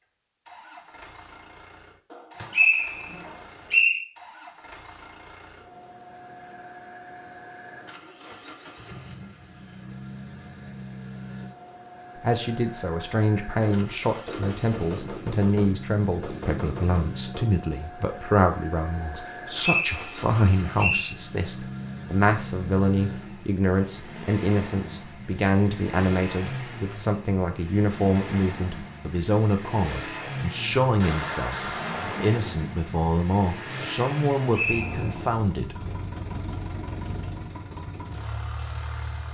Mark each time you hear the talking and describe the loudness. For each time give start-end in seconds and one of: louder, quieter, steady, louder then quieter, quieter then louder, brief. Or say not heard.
12.2-35.9 steady.